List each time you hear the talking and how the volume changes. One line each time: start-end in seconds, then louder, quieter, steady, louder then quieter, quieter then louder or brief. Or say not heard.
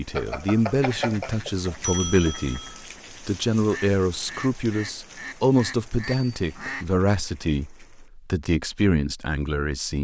0.0-9.9 steady.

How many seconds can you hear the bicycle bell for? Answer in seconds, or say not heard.
3 s.